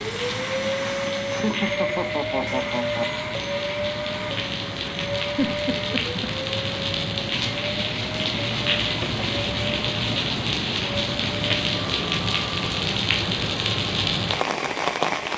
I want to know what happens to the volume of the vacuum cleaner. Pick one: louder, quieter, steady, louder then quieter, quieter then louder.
quieter.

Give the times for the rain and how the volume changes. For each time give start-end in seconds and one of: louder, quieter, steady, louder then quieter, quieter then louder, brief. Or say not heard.
0.0-15.3 louder.